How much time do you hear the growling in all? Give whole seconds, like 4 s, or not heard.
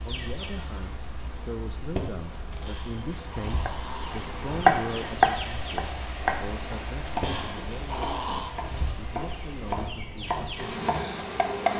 3 s.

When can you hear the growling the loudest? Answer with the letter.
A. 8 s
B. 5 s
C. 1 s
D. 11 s
A.